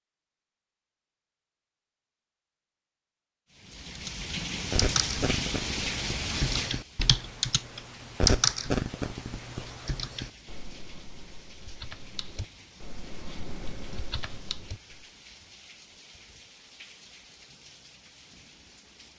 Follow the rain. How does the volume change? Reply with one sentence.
The volume of the rain goes down.